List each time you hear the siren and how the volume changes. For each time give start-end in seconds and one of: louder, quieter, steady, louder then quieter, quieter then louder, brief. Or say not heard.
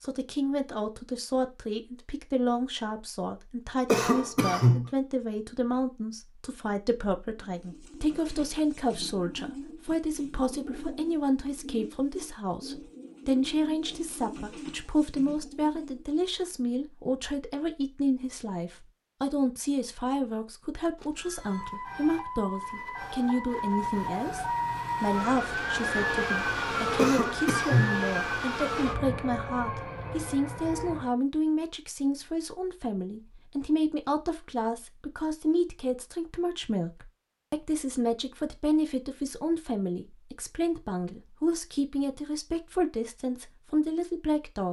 21.4-31.1 louder then quieter.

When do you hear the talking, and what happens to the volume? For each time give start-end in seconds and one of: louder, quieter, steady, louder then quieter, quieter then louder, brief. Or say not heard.
0.0-44.6 steady.